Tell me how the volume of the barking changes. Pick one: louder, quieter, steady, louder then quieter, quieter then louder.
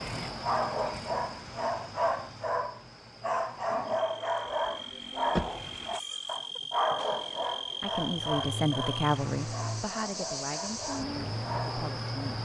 quieter.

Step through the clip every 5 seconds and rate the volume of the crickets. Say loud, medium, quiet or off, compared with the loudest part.
medium, loud, loud.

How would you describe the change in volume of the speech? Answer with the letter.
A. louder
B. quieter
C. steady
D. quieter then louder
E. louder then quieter
B.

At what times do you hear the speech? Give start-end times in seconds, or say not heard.
7.8-12.4.